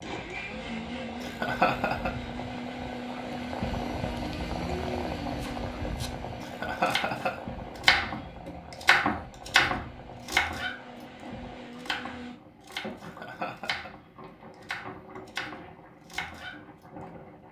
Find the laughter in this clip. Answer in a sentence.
You can hear the laughter from 1.2 to 2.1 s, from 6.4 to 7.3 s and from 13.0 to 13.9 s.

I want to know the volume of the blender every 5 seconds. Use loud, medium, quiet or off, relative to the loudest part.
loud, medium, medium, off.